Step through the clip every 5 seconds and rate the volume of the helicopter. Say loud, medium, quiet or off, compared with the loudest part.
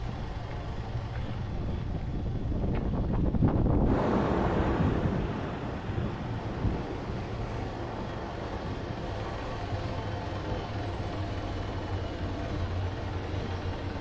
medium, loud, loud.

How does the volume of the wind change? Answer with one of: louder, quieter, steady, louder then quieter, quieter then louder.
louder then quieter.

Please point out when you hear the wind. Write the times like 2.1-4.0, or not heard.
0.0-13.9.